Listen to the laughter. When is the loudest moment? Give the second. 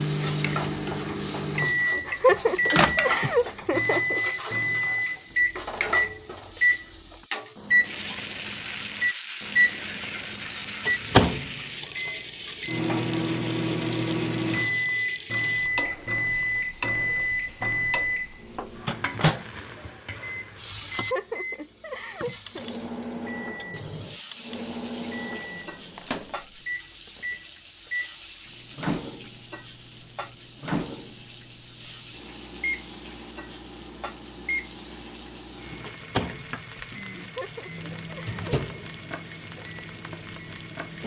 2 s.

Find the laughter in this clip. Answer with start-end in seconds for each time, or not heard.
1.9-4.2, 20.9-22.6, 37.2-38.5.